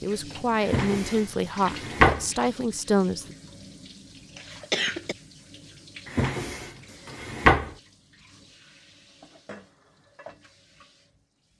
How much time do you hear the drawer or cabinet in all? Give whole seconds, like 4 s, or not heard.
3 s.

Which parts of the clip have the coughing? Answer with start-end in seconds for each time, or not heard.
4.3-5.2.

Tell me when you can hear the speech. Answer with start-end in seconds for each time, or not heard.
0.0-3.2.